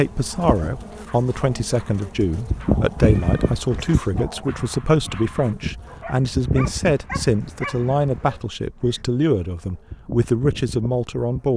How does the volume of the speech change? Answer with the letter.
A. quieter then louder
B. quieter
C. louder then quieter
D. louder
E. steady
E.